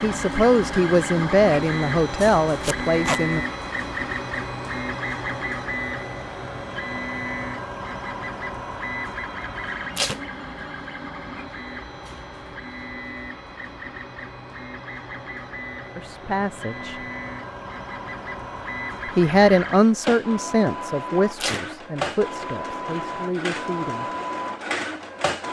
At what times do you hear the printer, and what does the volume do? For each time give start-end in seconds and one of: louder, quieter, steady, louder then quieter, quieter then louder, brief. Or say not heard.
0.0-25.4 quieter then louder.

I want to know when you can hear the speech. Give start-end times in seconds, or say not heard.
0.0-3.5, 15.9-17.1, 19.1-24.1.